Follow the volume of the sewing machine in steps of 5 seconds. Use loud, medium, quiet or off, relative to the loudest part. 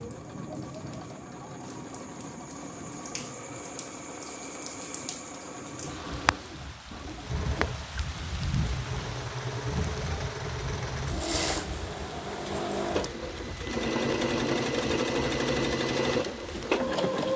quiet, medium, loud, loud.